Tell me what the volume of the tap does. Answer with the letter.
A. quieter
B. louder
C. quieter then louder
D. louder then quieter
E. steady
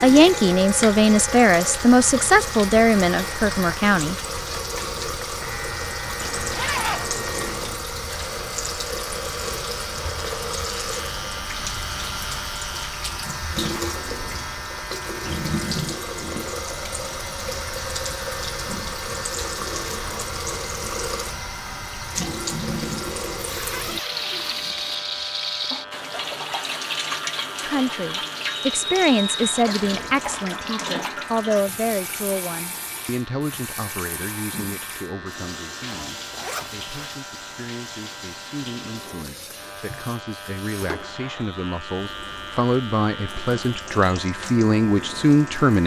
A.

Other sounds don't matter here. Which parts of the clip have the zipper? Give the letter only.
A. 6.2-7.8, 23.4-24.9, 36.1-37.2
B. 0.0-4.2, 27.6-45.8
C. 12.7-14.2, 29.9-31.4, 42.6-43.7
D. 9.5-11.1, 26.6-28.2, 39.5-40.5
A.